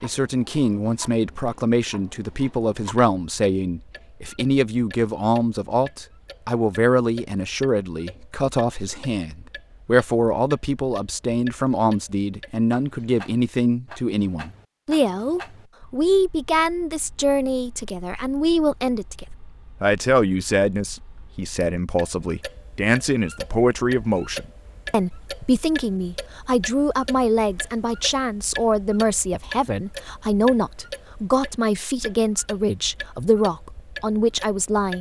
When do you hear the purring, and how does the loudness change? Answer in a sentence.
You can't hear the purring here.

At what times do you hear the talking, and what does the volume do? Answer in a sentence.
You can hear the talking from 0.0 to 34.9 s, at a steady volume.